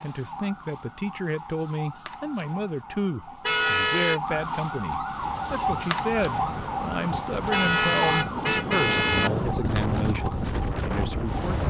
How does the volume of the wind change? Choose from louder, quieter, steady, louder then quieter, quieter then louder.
louder.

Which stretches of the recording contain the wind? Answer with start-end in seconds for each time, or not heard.
5.1-11.6.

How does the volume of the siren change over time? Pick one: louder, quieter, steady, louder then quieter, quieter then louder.
louder then quieter.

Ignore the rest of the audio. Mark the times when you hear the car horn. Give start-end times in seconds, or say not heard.
3.5-4.2, 7.5-9.3.